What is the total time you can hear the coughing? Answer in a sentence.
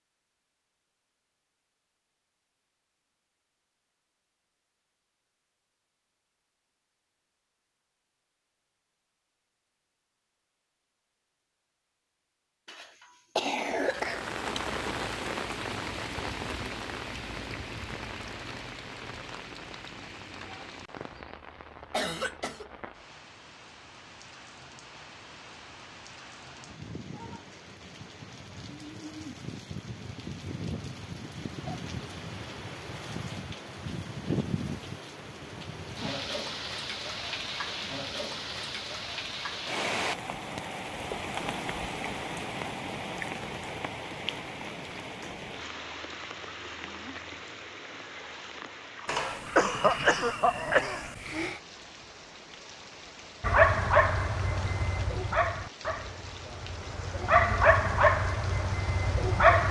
You can hear the coughing for 5 seconds altogether.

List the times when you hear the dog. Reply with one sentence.
The dog can be heard from 53.4 to 59.6 s.